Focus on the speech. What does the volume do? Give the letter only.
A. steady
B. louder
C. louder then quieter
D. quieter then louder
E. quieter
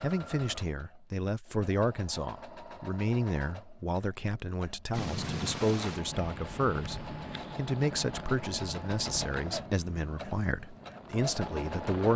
A.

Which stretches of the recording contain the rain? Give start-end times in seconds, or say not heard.
4.9-12.1.